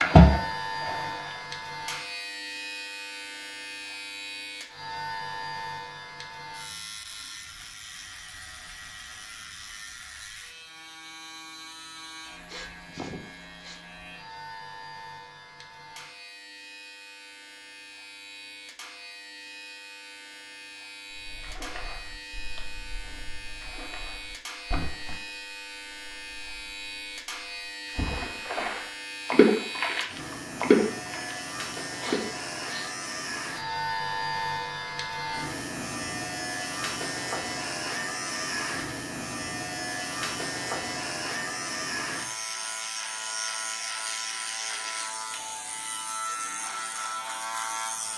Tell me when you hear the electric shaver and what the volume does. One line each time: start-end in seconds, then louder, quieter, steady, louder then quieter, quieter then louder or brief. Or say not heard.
0.0-48.1 quieter then louder.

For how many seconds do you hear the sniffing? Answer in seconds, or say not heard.
2 s.